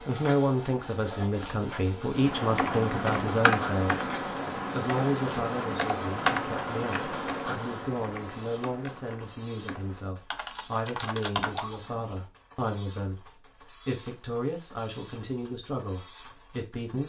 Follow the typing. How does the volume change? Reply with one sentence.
The loudness of the typing goes down, then up.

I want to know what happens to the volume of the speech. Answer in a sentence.
The volume of the speech goes down.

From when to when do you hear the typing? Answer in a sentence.
You can hear the typing from 2.1 to 12.2 s.